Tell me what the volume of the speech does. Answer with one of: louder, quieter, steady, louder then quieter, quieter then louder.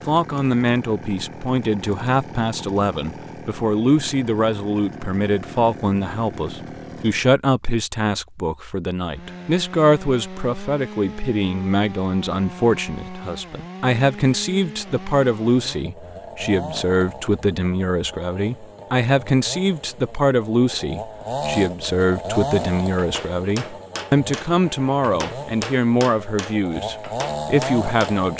steady.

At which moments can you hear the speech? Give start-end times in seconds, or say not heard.
0.1-28.3.